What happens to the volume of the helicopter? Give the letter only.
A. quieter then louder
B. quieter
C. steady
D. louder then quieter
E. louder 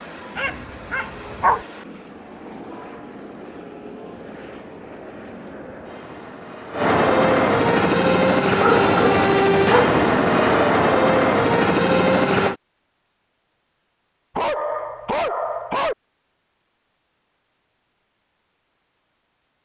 E.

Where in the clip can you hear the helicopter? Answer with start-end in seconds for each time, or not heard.
0.0-12.6.